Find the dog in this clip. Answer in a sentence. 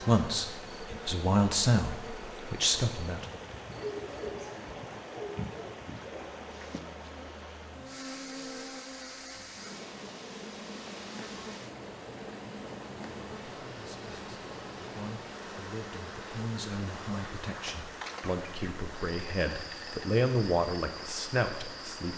The dog can be heard from 3.8 to 6.5 s.